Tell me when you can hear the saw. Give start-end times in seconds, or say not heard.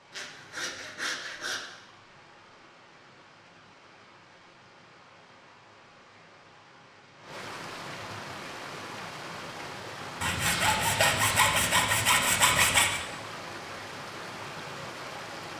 0.1-1.7, 10.2-13.0.